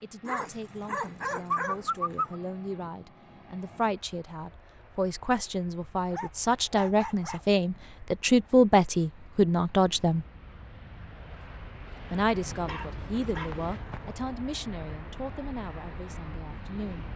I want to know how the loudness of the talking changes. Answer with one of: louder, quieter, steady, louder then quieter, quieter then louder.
louder then quieter.